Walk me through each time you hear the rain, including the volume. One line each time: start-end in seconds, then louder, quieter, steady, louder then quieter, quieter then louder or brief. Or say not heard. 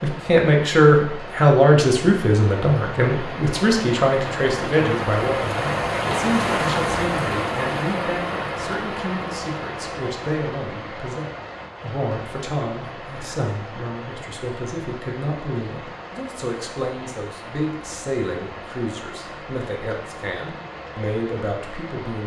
0.0-22.2 louder then quieter.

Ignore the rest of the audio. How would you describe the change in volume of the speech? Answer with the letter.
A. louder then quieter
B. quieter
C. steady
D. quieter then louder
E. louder
B.